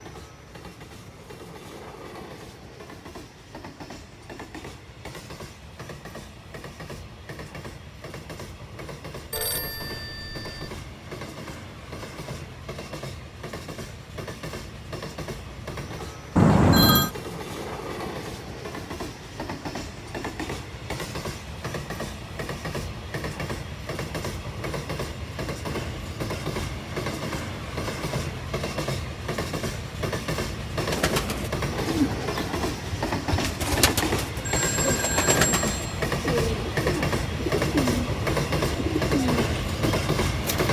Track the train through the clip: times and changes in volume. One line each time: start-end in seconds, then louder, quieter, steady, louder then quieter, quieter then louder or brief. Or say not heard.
0.0-40.6 louder.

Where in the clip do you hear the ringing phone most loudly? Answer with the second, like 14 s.
17 s.